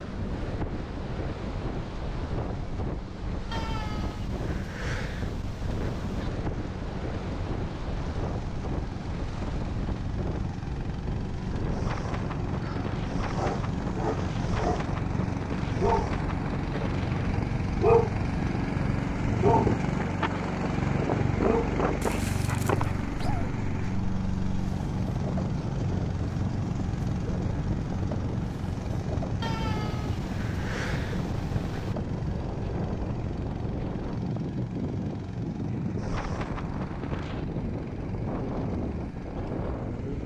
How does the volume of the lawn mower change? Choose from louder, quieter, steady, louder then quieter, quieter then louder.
louder then quieter.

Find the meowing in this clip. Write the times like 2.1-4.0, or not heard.
3.5-6.3, 29.4-31.9.